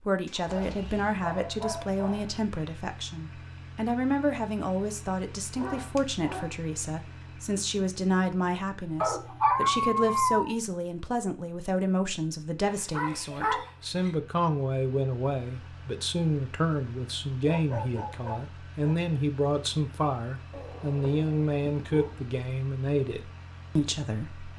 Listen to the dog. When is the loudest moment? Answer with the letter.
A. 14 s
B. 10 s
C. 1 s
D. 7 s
B.